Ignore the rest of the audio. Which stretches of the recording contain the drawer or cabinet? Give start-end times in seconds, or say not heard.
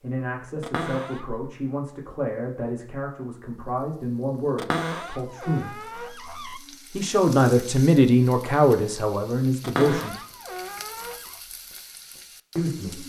0.6-1.3, 4.5-6.6, 9.6-11.3.